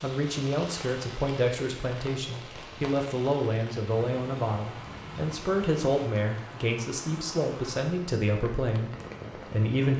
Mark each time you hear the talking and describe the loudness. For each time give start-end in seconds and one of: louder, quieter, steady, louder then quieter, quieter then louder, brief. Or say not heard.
0.0-9.9 steady.